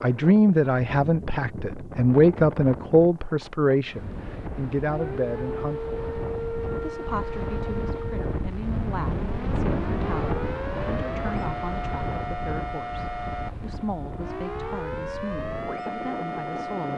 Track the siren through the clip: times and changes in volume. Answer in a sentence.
You can hear the siren from 4.5 to 16.9 s, at a steady volume.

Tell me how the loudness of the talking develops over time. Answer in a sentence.
The loudness of the talking goes down.